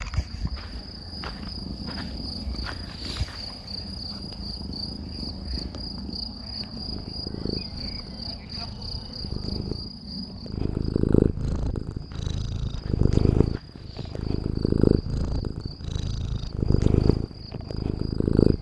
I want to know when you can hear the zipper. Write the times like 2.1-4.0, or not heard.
not heard.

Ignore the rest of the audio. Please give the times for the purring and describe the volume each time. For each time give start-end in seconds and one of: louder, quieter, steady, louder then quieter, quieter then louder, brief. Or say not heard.
0.0-18.5 louder.